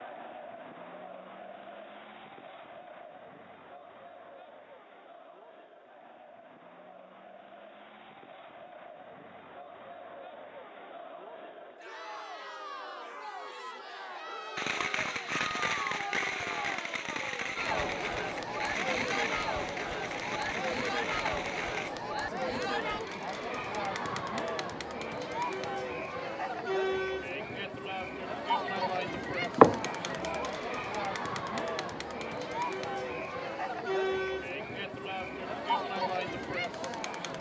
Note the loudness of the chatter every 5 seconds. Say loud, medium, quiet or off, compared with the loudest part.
quiet, quiet, medium, loud, loud, loud, loud, loud.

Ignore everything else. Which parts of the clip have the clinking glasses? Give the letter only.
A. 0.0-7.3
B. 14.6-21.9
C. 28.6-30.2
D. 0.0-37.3
C.